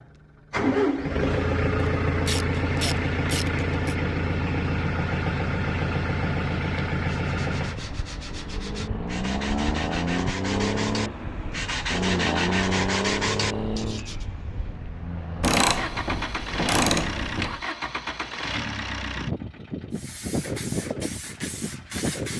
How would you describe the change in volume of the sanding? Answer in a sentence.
The loudness of the sanding goes up.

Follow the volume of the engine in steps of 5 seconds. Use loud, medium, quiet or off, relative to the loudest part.
loud, loud, loud, medium, medium.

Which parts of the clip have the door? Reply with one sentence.
You can't hear the door here.